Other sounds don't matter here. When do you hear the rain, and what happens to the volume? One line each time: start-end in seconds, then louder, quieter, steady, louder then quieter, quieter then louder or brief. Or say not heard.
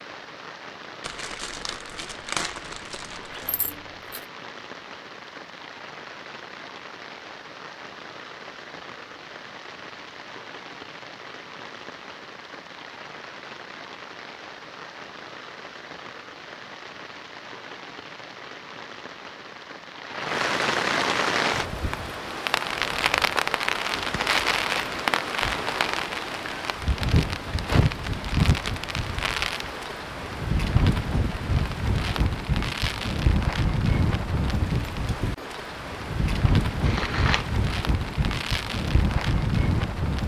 0.0-40.2 louder.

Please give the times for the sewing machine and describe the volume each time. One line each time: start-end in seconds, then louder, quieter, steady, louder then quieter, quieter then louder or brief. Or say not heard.
not heard.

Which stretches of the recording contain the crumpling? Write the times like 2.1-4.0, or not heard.
1.0-3.5, 23.9-25.0, 36.8-37.5.